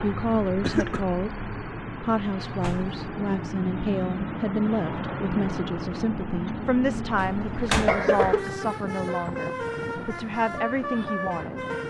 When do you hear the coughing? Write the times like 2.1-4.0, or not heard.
0.6-1.0, 7.4-8.6.